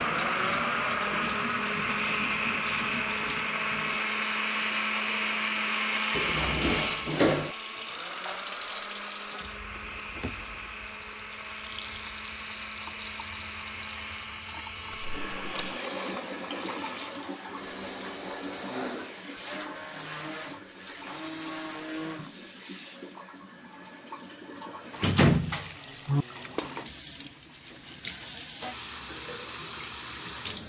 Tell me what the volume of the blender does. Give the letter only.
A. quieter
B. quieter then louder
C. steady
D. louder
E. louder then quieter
A.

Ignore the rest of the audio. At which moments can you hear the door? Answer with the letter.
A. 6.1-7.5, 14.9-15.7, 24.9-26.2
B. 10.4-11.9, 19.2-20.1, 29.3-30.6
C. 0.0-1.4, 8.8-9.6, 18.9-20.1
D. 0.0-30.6
A.